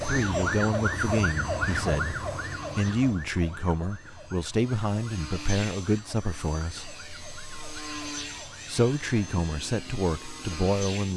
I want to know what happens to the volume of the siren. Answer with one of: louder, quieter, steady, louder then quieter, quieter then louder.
quieter.